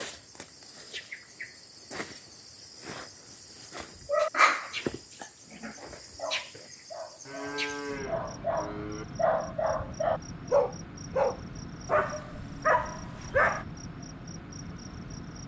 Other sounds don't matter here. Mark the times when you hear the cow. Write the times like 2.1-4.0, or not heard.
7.2-9.1.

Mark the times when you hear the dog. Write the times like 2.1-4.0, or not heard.
4.0-13.7.